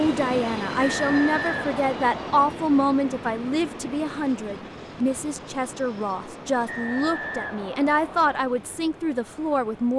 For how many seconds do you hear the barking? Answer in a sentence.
You can't hear the barking here.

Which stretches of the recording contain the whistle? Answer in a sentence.
The whistle can be heard from 0.8 to 2.5 s and from 6.7 to 8.3 s.